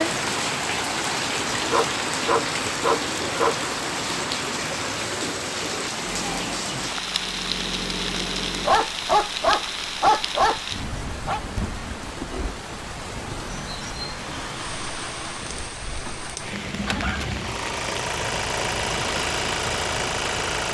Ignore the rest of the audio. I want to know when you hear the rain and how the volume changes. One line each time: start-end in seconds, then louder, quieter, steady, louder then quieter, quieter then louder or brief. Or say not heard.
0.0-20.6 quieter.